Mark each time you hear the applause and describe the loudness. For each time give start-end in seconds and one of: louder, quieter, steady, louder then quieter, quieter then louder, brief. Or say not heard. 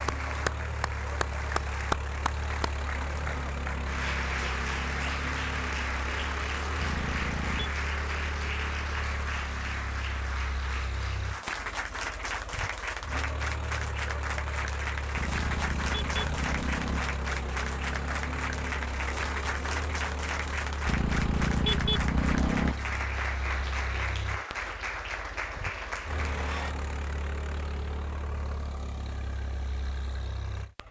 0.0-26.8 steady.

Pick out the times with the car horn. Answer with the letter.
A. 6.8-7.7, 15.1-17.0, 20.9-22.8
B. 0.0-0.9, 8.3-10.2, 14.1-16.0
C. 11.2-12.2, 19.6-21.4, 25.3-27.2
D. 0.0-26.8
A.